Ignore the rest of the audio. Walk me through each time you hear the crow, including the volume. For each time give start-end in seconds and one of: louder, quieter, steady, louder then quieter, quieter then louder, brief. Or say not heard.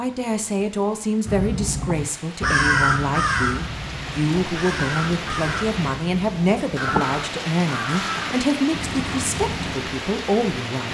1.2-9.8 quieter.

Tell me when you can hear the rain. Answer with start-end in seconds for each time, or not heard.
0.0-10.8.